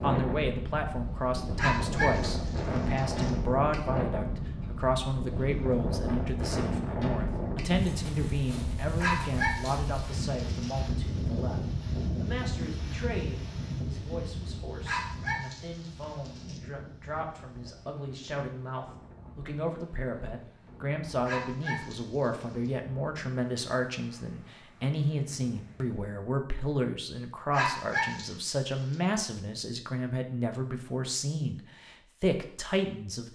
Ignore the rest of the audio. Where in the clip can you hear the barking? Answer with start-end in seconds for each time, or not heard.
1.6-3.3, 9.0-10.8, 14.8-16.6, 21.2-22.3, 27.5-28.9.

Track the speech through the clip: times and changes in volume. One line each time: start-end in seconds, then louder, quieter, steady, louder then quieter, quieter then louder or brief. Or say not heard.
0.0-33.2 quieter then louder.